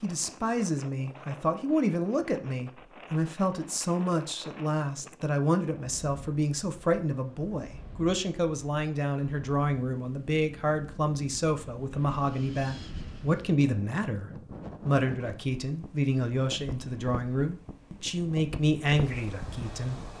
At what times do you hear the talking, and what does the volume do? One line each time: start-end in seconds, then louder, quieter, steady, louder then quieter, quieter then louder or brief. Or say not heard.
0.0-20.1 steady.